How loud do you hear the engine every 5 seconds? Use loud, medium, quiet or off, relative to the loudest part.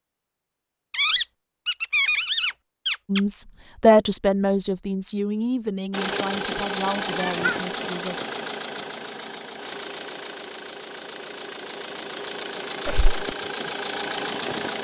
off, loud, loud.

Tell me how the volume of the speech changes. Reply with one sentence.
The loudness of the speech goes down.